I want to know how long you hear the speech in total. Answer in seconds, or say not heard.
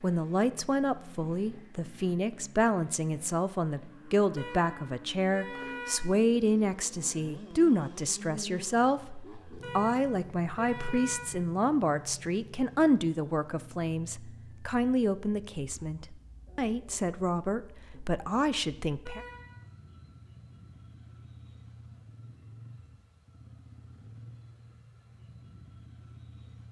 19 s.